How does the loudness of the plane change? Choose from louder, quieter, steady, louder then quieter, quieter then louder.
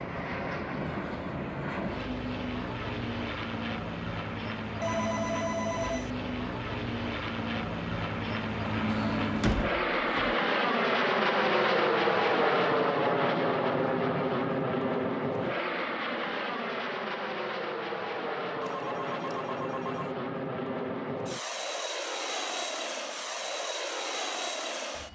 louder then quieter.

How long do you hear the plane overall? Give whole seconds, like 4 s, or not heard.
25 s.